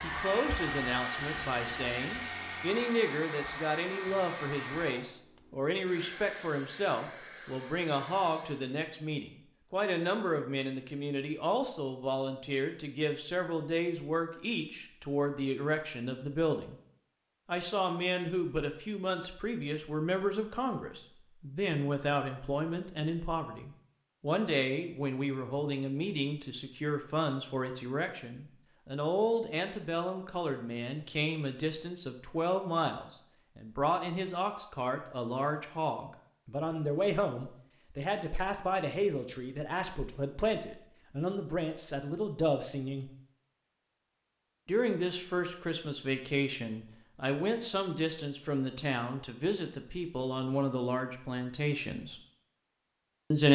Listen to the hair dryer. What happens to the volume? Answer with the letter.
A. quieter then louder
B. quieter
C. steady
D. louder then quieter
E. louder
B.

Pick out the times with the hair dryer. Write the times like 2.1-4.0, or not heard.
0.0-8.8.